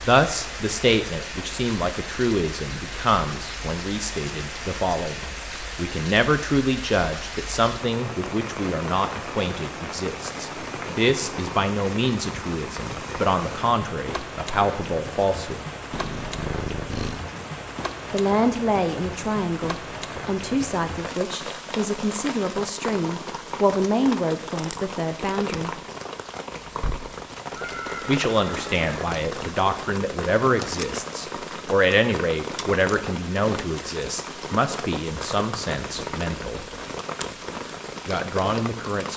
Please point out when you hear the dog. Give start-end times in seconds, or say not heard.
not heard.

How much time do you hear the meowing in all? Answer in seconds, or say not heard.
3 s.